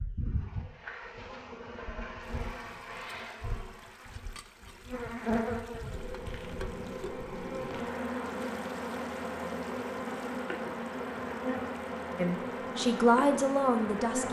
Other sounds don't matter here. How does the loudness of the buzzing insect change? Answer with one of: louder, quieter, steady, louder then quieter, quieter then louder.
louder.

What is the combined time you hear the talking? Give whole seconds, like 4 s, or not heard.
2 s.